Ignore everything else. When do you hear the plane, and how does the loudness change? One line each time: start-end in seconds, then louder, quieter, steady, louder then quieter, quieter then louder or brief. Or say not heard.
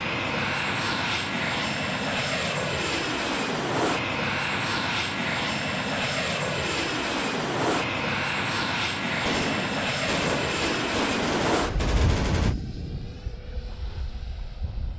0.0-14.9 quieter.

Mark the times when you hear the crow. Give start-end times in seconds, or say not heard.
not heard.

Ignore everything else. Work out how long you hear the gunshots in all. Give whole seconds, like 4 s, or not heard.
3 s.